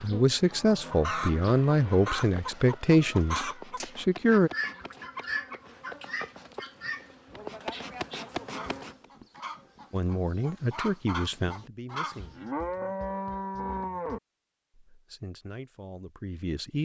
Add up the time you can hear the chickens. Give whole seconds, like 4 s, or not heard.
12 s.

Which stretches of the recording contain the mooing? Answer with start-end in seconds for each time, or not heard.
0.5-2.2, 7.3-8.9, 12.2-14.2.